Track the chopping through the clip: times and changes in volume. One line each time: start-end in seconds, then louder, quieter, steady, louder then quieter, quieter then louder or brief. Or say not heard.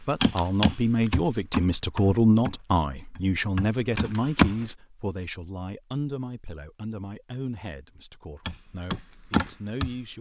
0.1-4.5 quieter then louder
8.4-10.1 brief.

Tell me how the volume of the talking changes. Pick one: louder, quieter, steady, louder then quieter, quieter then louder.
quieter.